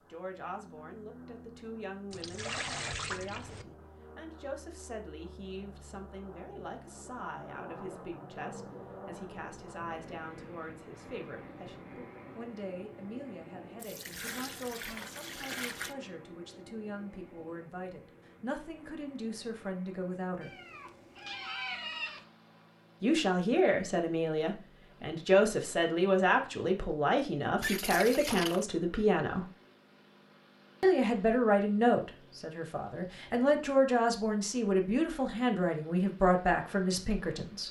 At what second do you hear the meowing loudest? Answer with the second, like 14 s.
22 s.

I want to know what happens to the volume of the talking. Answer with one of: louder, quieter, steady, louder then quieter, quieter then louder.
louder.